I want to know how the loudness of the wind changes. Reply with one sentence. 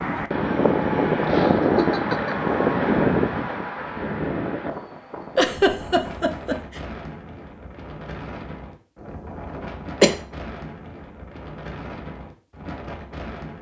The volume of the wind goes down.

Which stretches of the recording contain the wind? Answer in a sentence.
The wind can be heard from 0.0 to 13.5 s.